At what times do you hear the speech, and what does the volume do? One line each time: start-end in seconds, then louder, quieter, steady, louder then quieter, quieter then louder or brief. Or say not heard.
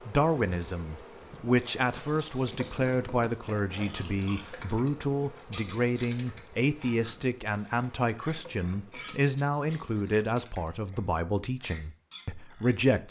0.1-13.0 steady.